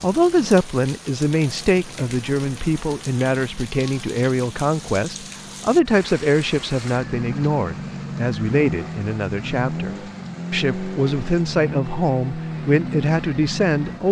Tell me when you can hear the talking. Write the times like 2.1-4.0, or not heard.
0.0-14.0.